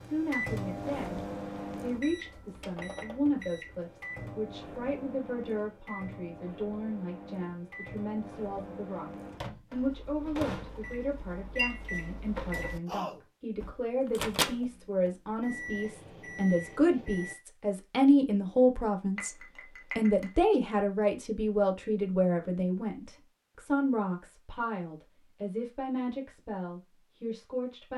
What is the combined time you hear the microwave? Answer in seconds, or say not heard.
17 s.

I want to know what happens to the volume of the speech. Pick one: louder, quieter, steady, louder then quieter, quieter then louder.
louder then quieter.